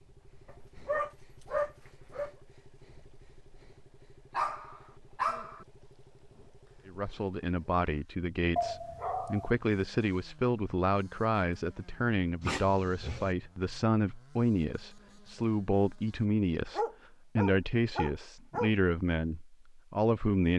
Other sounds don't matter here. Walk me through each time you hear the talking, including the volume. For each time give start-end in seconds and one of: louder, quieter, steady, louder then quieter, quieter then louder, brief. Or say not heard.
6.8-20.5 steady.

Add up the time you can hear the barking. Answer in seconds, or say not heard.
7 s.